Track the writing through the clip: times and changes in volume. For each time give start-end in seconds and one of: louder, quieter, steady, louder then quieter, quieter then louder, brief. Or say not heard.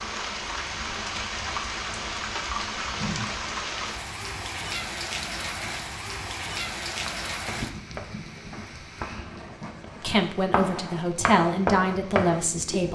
6.8-12.9 louder.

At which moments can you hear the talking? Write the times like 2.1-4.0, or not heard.
9.9-12.9.